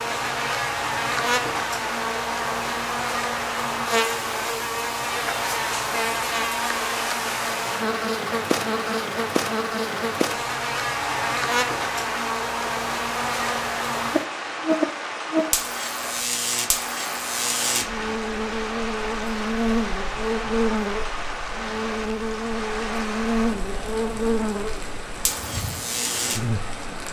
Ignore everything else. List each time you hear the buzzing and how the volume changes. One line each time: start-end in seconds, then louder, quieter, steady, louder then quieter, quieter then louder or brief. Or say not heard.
0.0-26.8 steady.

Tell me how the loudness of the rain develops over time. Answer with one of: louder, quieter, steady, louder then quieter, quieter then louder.
steady.